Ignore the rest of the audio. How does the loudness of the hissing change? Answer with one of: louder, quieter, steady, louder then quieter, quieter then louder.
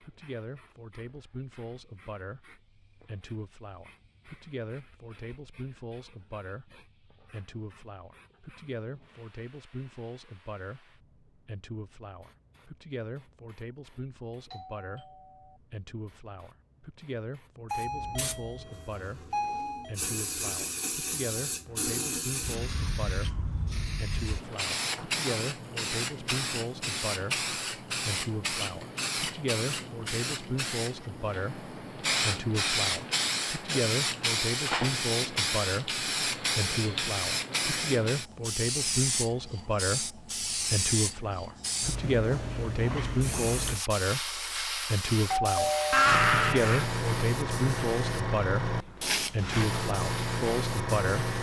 louder.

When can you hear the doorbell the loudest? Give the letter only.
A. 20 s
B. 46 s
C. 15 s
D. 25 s
B.